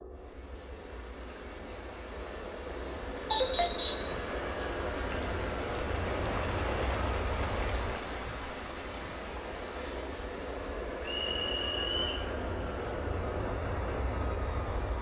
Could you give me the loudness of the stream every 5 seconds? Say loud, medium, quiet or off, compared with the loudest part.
loud, loud, medium.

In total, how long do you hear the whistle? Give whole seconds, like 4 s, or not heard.
2 s.